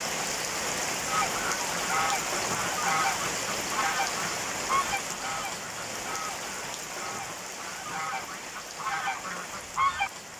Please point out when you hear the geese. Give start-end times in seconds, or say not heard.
1.1-10.1.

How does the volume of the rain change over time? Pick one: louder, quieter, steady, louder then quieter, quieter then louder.
quieter.